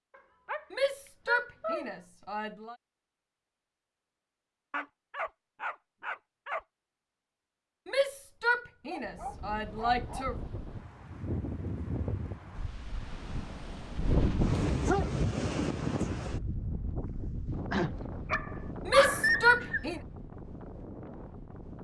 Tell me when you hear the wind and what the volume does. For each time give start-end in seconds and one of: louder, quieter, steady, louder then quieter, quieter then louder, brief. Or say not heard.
9.0-21.8 louder then quieter.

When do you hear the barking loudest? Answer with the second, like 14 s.
19 s.